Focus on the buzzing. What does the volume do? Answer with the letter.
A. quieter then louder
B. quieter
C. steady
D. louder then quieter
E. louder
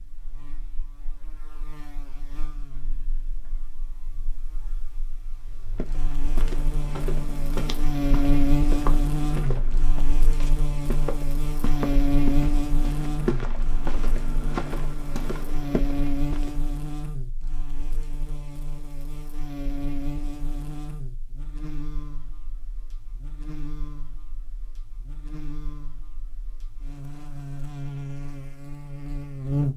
D.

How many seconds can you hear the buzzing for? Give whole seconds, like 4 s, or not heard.
30 s.